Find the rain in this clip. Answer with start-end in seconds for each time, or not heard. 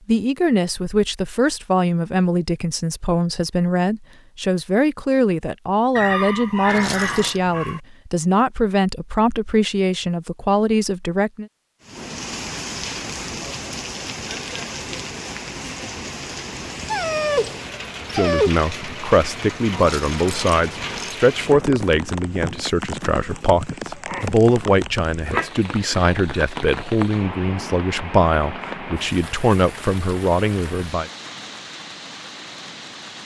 11.8-33.2.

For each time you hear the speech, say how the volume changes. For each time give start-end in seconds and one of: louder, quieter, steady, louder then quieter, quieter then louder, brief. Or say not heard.
0.1-11.4 steady
18.0-31.1 steady.